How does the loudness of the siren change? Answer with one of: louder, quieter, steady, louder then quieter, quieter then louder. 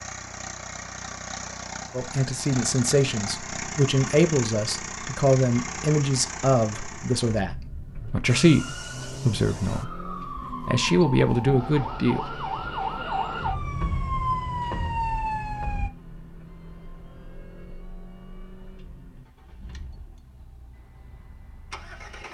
louder.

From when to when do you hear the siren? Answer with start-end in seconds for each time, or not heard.
8.2-15.9.